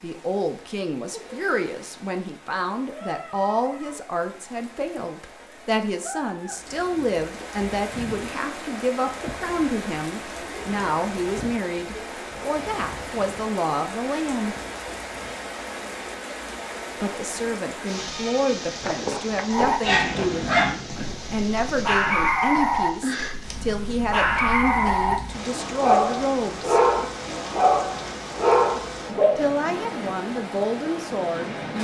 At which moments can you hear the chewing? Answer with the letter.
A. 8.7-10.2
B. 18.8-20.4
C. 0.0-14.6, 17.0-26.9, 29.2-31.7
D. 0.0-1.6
B.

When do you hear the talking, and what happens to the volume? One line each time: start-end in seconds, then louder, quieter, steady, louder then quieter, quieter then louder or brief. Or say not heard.
0.0-14.6 steady
17.0-26.9 steady
29.2-31.7 brief.